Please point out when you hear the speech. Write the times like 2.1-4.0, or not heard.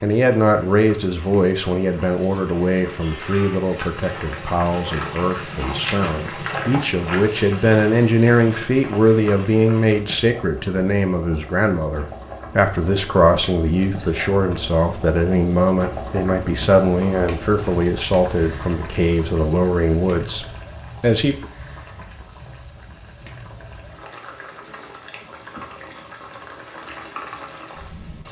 0.0-21.4.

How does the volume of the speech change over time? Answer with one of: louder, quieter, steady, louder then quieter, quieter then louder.
steady.